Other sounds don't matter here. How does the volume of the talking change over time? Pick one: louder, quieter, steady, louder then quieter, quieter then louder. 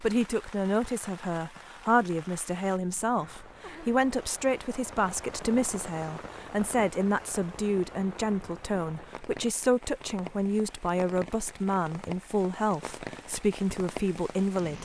steady.